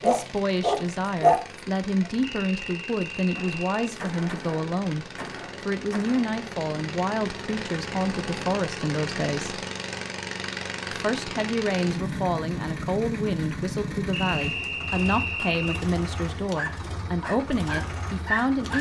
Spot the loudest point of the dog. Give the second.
1 s.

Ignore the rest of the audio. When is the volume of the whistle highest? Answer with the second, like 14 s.
15 s.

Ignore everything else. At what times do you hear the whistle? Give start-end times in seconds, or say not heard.
2.2-4.0, 14.1-15.8.